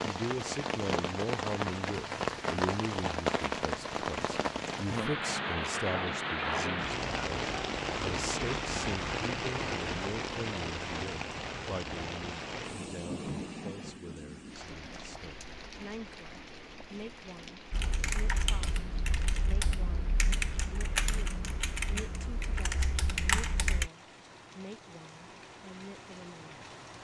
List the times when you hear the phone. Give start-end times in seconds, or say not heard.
not heard.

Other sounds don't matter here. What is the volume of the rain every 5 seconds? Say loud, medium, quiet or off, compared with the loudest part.
loud, loud, medium, quiet, quiet, quiet.